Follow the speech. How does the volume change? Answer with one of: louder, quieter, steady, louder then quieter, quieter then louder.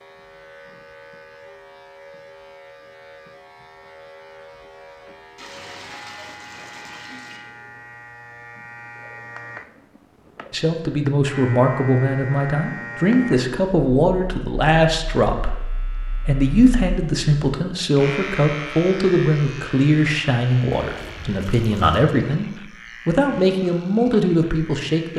steady.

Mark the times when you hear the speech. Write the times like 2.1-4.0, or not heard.
10.5-25.1.